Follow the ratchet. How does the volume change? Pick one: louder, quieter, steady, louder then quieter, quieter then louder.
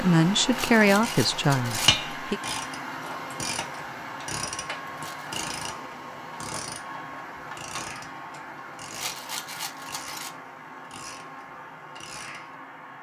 quieter.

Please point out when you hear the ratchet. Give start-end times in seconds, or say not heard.
0.8-12.6.